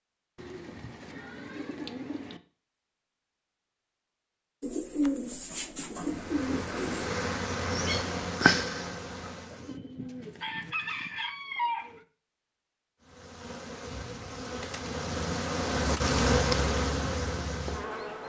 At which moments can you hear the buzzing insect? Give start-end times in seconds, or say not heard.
6.0-9.8, 13.0-18.2.